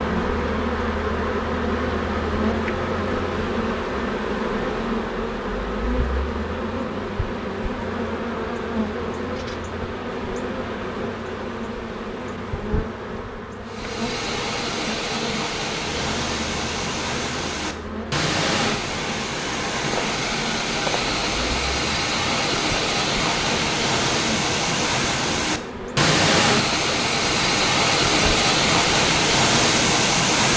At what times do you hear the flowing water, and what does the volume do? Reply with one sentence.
The flowing water can be heard from 13.7 to 30.5 s, getting louder.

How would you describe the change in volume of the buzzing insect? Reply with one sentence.
The volume of the buzzing insect goes down.